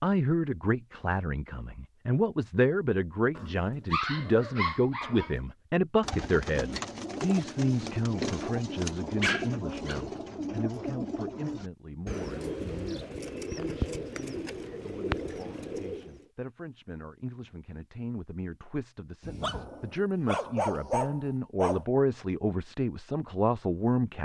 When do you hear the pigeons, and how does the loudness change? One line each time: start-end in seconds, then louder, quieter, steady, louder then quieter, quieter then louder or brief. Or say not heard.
6.0-16.2 steady.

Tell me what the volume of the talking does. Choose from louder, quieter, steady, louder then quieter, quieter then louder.
quieter then louder.